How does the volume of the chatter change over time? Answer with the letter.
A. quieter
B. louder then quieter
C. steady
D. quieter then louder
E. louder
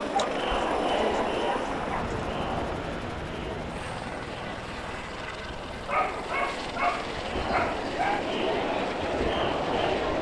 D.